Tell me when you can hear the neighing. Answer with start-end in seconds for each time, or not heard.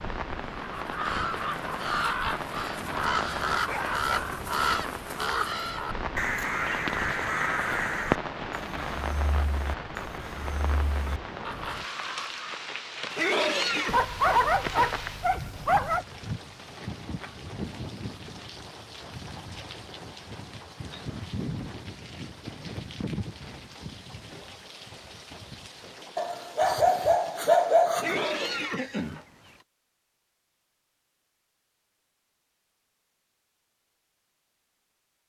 13.1-14.0, 27.9-29.6.